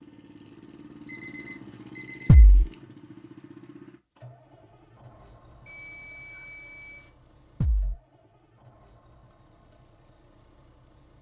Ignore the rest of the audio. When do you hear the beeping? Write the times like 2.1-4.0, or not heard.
1.1-2.4, 5.7-7.1.